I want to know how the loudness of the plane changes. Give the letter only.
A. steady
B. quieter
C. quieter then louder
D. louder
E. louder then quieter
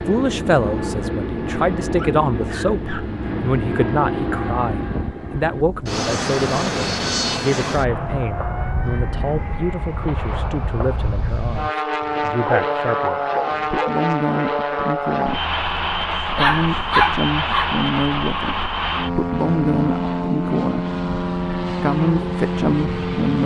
A.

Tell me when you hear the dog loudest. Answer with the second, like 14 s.
17 s.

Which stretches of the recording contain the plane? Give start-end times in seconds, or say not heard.
0.0-23.4.